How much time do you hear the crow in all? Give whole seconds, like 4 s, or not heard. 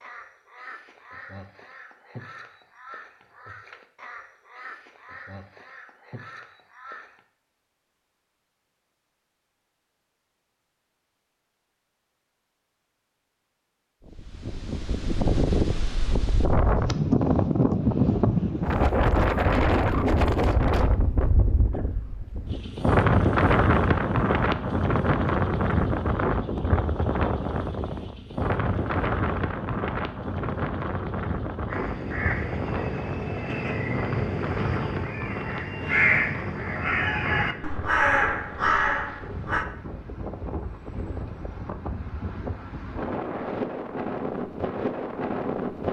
15 s.